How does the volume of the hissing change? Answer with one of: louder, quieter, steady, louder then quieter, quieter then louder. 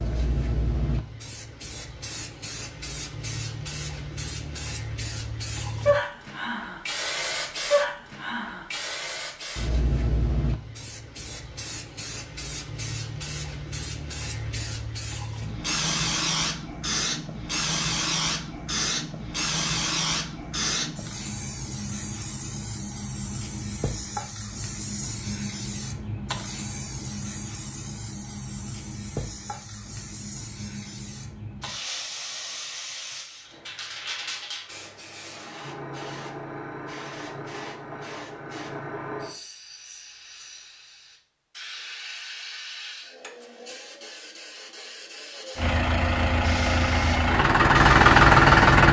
quieter.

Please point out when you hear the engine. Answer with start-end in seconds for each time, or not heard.
45.5-48.8.